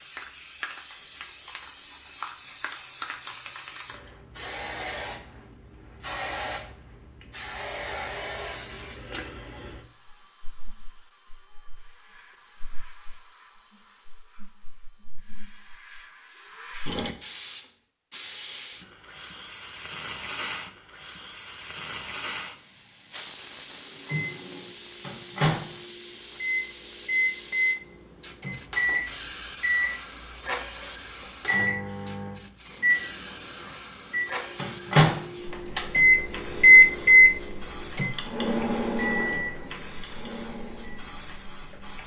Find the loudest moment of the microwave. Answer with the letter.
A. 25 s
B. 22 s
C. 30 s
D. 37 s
D.